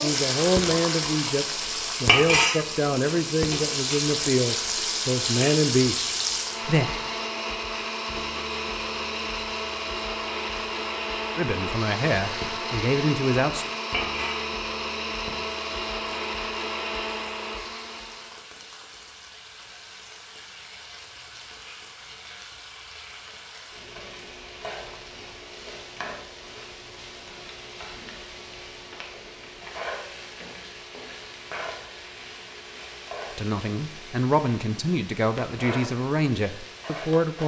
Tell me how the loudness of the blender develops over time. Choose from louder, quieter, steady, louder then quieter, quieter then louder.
louder.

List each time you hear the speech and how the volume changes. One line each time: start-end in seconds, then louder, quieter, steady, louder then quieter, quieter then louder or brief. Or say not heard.
0.0-6.9 steady
11.3-13.7 brief
33.4-37.4 quieter.